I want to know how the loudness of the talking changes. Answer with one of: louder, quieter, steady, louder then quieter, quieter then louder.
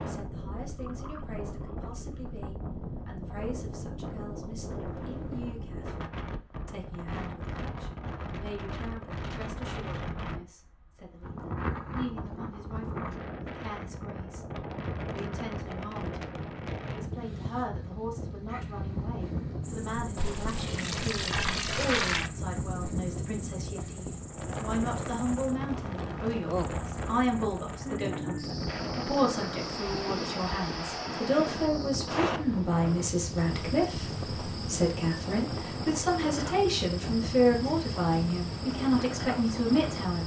louder.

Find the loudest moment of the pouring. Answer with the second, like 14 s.
22 s.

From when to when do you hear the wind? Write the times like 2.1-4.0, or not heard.
0.0-40.2.